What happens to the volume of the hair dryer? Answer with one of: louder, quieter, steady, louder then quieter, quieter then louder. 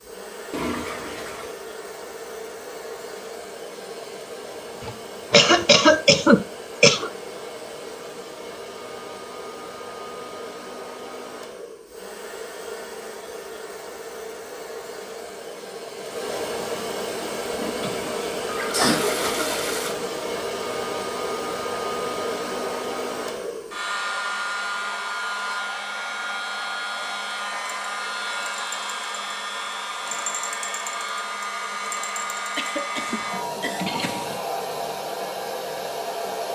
louder.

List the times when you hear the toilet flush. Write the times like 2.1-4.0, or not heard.
0.5-1.6, 17.5-19.9, 33.0-34.5.